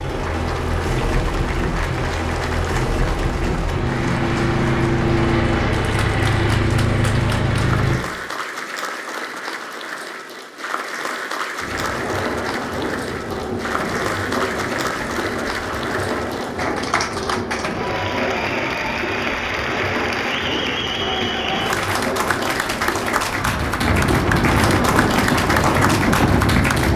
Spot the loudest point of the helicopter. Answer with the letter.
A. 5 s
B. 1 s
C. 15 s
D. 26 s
A.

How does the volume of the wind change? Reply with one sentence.
The volume of the wind goes up.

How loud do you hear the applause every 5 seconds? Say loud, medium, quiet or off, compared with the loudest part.
medium, medium, medium, loud, loud, loud.